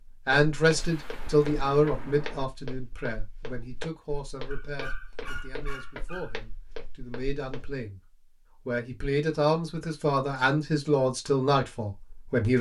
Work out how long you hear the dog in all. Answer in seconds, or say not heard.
2 s.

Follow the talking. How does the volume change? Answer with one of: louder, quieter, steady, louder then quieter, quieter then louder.
quieter then louder.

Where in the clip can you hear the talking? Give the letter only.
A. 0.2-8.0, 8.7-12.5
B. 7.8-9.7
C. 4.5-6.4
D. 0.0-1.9
A.